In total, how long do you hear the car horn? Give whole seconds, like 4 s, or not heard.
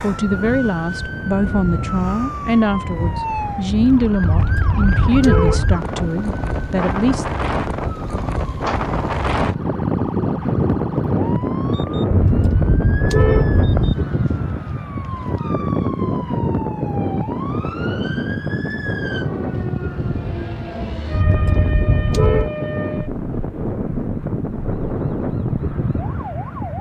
5 s.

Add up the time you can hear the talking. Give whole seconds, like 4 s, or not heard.
7 s.